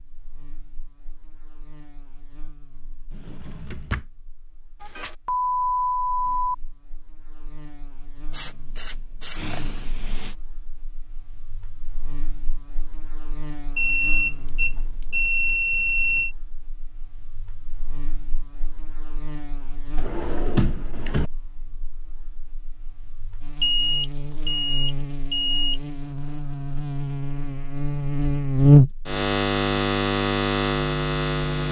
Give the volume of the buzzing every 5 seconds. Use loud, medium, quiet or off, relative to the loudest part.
quiet, quiet, quiet, quiet, quiet, loud, loud.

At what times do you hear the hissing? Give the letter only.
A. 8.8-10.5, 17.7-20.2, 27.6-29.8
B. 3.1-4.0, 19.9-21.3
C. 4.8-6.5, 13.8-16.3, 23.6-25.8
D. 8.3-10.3
D.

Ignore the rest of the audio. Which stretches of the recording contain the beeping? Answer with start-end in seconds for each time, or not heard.
4.8-6.5, 13.8-16.3, 23.6-25.8.